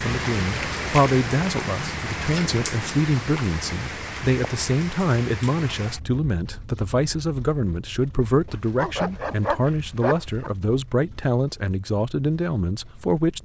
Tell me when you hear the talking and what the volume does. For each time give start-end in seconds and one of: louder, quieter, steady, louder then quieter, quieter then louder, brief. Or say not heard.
0.0-13.3 steady.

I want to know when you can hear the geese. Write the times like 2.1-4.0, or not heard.
not heard.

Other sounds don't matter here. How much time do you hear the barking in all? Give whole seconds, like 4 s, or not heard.
2 s.